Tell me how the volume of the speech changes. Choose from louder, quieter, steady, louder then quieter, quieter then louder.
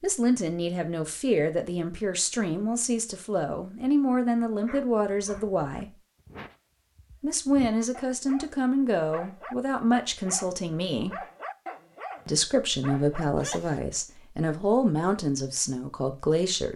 steady.